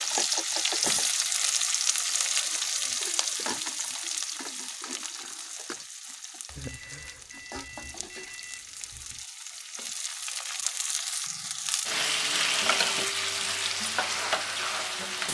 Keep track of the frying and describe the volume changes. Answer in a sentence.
The loudness of the frying goes down, then up.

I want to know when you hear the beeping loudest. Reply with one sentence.
The loudest moment of the beeping is at 7 seconds.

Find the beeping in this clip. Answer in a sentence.
You can hear the beeping from 6.5 to 9.2 s.